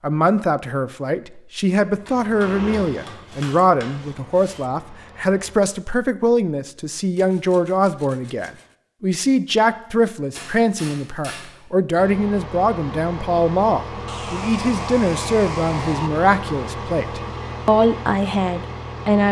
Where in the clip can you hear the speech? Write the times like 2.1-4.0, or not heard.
0.0-19.2.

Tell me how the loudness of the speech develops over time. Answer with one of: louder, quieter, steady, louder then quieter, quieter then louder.
steady.